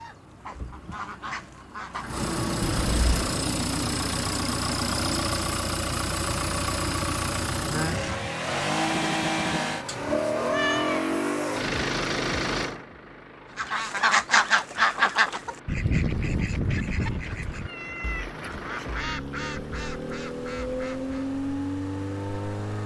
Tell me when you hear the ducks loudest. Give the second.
14 s.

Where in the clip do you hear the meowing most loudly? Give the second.
11 s.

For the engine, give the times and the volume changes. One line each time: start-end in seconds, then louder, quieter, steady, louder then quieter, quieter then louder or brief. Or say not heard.
0.0-22.8 quieter then louder.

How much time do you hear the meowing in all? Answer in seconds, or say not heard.
2 s.